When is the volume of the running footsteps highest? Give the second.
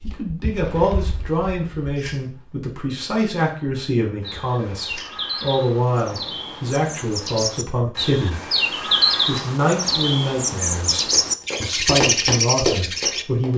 13 s.